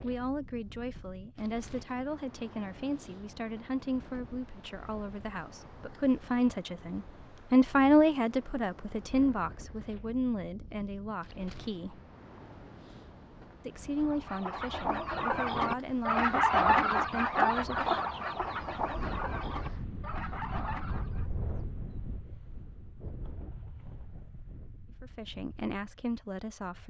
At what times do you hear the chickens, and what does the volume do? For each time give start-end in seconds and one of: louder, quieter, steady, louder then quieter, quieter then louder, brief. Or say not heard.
13.9-21.3 louder then quieter.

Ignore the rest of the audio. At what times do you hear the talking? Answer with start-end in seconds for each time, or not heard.
0.0-12.0, 13.7-17.9, 25.0-26.8.